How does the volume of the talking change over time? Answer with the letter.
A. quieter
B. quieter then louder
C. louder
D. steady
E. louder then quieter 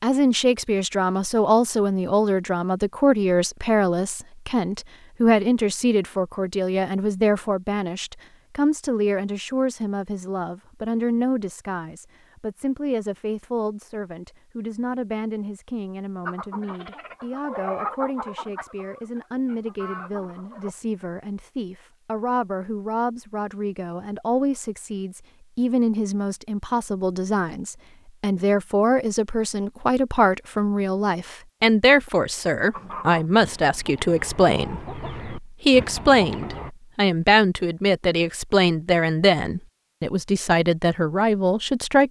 B.